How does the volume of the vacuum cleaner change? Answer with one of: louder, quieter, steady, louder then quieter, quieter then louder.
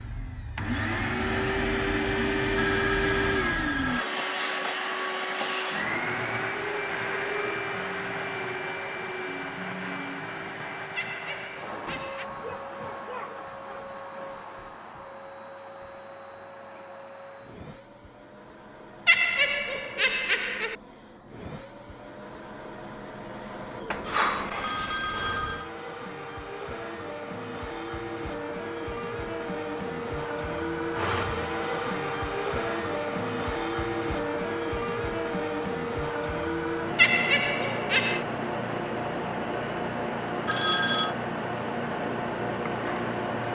quieter then louder.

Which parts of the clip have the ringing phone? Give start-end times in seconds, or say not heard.
2.5-4.0, 23.9-25.7, 40.5-41.1.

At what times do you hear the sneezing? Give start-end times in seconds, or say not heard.
not heard.